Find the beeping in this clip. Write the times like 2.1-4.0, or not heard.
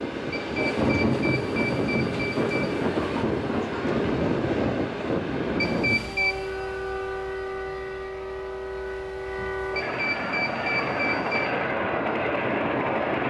0.3-2.7, 5.6-6.3, 9.8-11.5.